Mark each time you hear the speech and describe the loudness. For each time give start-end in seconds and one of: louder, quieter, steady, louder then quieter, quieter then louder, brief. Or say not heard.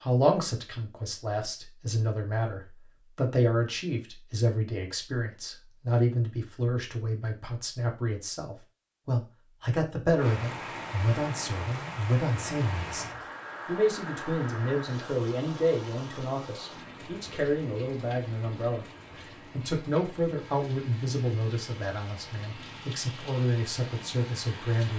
0.0-24.9 steady.